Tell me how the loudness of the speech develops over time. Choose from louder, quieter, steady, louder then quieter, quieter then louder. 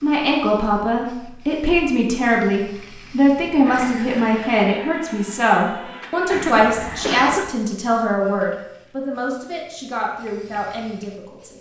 quieter.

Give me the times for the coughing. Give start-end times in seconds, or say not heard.
6.2-7.5.